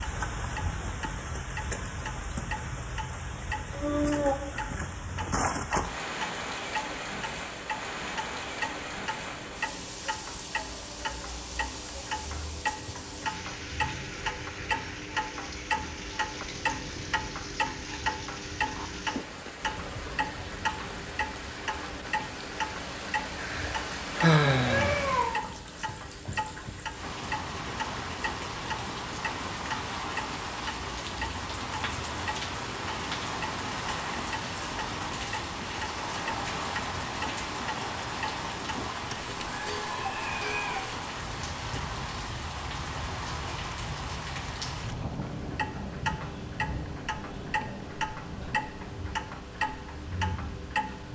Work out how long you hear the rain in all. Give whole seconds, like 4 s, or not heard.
51 s.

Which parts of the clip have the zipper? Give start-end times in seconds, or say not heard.
not heard.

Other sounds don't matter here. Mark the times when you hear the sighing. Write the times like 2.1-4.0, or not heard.
23.4-25.0.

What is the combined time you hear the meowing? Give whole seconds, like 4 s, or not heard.
3 s.